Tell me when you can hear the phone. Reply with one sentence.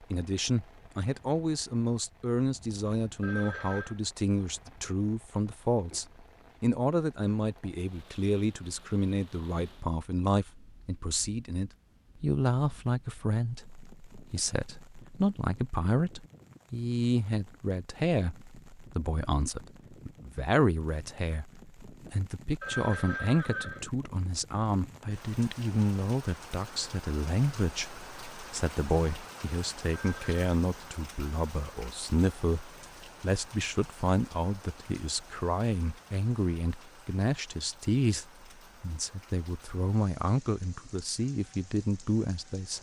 You can hear the phone from 3.2 to 4.0 s, from 22.6 to 23.9 s and from 29.9 to 30.4 s.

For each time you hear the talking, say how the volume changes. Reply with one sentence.
You can hear the talking from 0.0 to 42.7 s, at a steady volume.